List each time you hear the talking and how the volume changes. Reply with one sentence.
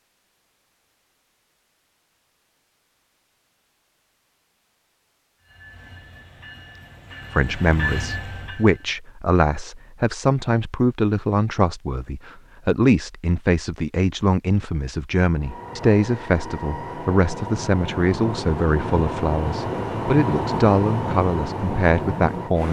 You can hear the talking from 7.3 to 22.6 s, at a steady volume.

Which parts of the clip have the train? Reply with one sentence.
The train can be heard from 5.4 to 8.9 s and from 15.2 to 22.6 s.